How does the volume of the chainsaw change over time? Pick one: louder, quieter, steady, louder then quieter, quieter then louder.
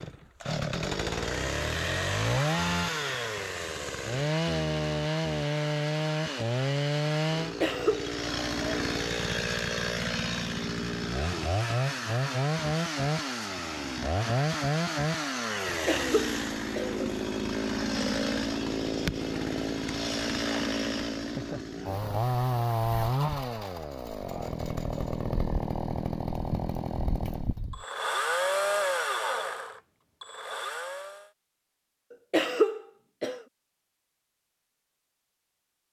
steady.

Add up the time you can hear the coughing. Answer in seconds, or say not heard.
3 s.